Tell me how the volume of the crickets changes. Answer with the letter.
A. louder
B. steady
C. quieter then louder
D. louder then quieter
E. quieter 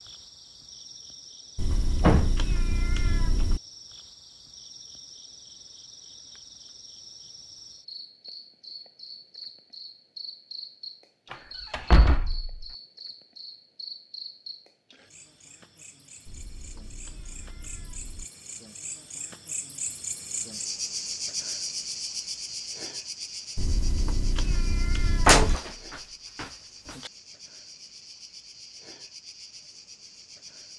D.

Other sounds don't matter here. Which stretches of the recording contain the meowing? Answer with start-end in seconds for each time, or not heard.
1.6-3.6, 16.2-18.2, 23.6-25.6.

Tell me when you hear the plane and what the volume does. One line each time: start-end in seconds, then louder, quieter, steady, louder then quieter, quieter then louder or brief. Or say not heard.
not heard.